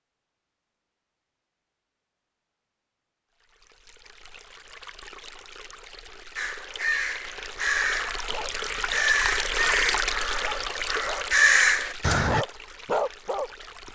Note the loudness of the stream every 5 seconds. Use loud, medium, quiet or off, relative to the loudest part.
quiet, loud, loud.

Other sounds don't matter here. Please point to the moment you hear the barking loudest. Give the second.
13 s.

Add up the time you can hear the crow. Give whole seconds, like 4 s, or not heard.
6 s.